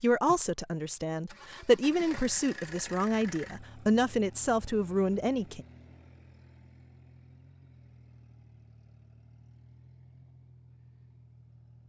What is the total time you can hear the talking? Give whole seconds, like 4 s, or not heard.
6 s.